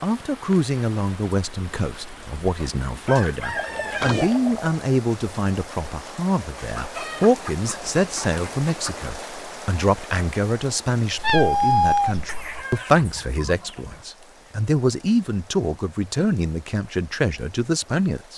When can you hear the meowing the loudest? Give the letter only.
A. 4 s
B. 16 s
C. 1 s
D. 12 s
D.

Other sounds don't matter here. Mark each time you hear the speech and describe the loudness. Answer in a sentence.
You can hear the speech from 0.0 to 18.3 s, at a steady volume.